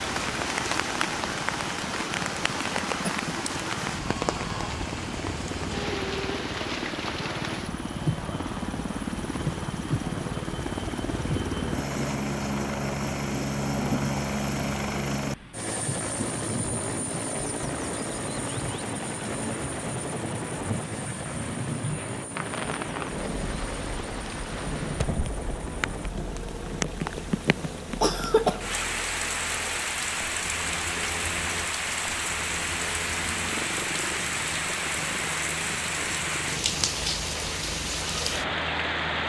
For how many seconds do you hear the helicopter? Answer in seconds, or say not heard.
39 s.